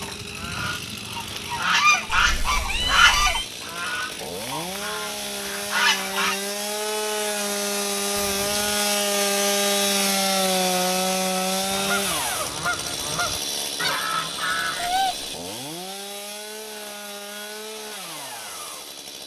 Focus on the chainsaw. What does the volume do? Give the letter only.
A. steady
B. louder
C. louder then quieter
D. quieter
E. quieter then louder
C.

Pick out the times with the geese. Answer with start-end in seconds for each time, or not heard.
0.0-6.4, 11.6-14.9.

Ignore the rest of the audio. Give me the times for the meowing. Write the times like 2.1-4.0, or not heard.
2.0-3.5, 8.2-8.8, 14.8-15.3.